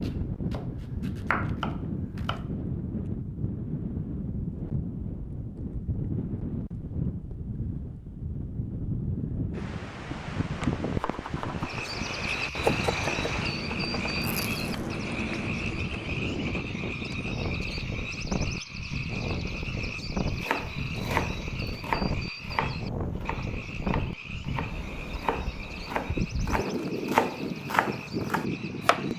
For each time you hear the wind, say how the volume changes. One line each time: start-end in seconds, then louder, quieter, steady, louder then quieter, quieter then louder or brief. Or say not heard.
0.0-29.1 steady.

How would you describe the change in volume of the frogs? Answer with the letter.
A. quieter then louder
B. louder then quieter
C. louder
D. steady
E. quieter
E.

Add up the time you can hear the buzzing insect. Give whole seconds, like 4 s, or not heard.
not heard.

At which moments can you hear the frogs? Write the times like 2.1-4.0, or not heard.
11.5-29.1.